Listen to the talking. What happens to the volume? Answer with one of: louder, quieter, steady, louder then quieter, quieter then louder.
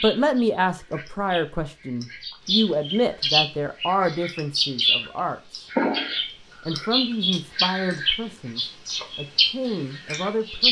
quieter.